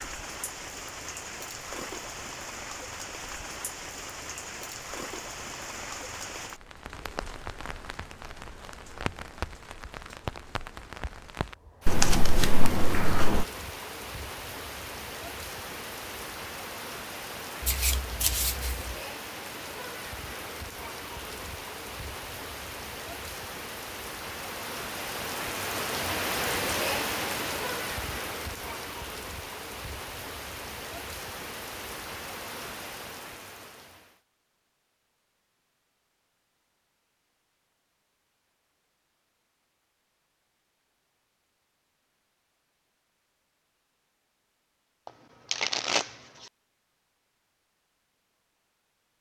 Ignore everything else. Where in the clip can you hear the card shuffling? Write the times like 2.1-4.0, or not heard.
11.8-13.4, 17.6-18.9, 45.0-46.1.